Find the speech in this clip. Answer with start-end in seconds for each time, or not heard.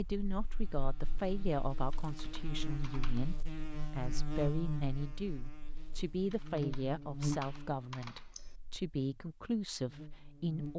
0.0-10.7.